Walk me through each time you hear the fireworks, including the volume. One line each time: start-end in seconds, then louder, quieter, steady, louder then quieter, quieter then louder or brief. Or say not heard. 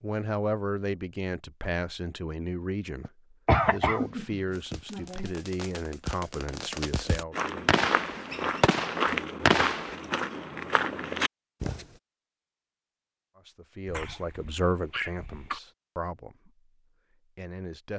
4.5-9.9 louder.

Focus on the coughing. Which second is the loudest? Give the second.
4 s.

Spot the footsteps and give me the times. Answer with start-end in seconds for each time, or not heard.
7.3-11.8.